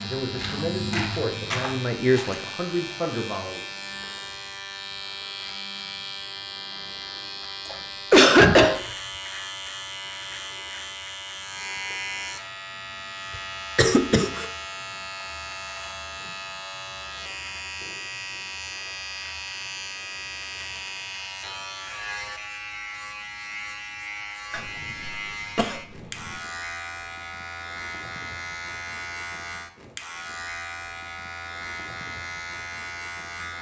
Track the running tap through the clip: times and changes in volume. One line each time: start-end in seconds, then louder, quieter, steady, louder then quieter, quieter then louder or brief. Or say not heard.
not heard.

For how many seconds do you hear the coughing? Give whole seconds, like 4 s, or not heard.
3 s.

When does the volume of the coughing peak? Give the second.
8 s.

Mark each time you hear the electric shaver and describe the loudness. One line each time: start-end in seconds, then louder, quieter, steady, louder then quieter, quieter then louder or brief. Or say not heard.
0.0-33.5 steady.